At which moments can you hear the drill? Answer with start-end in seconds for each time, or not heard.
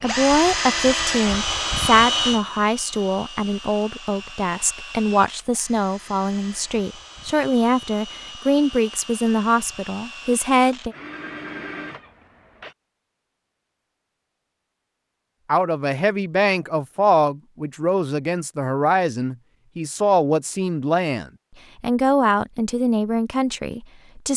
0.0-12.8.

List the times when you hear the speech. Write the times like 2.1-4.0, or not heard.
0.0-10.9, 15.4-24.3.